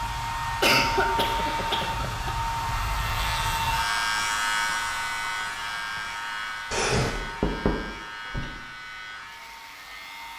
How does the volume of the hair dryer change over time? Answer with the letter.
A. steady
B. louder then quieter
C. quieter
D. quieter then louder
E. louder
C.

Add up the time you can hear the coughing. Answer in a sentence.
You can hear the coughing for 2 seconds altogether.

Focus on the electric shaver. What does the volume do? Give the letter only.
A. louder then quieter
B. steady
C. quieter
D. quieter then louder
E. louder
A.